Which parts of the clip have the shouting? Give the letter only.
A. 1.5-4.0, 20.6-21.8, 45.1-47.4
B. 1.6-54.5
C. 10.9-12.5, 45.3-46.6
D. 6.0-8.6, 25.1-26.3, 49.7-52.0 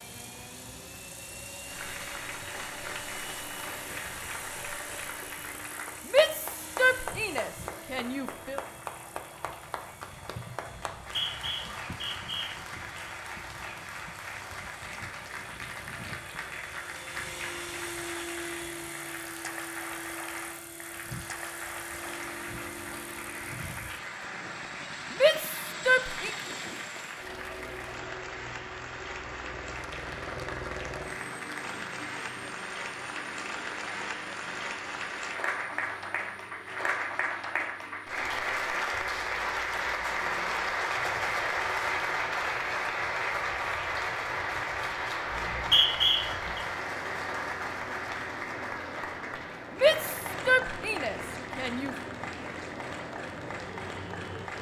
D.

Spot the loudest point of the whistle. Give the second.
46 s.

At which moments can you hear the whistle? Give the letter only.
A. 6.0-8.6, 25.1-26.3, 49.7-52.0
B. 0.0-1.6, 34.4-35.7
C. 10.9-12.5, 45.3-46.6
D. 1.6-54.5
C.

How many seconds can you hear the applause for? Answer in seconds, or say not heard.
53 s.